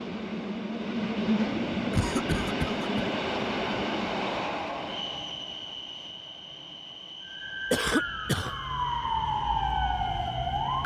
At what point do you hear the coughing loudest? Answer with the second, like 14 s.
8 s.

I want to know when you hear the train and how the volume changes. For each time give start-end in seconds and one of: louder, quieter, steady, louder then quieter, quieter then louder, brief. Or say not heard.
0.0-10.8 quieter.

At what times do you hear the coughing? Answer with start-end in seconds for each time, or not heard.
1.9-2.9, 7.7-8.6.